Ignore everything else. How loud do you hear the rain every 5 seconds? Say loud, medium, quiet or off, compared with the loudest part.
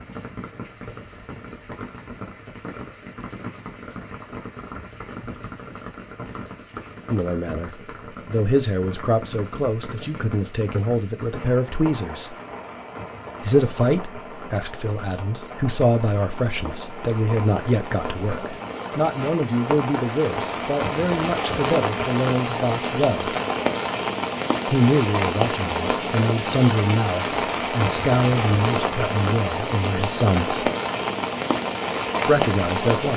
quiet, quiet, quiet, medium, loud, loud, loud.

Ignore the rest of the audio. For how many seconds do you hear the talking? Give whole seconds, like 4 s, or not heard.
22 s.